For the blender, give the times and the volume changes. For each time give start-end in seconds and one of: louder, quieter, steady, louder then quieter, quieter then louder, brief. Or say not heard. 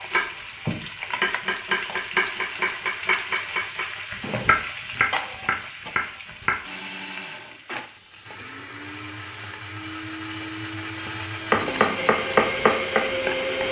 6.7-13.6 louder.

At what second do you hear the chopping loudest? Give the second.
13 s.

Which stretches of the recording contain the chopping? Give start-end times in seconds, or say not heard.
0.0-6.5, 11.5-13.6.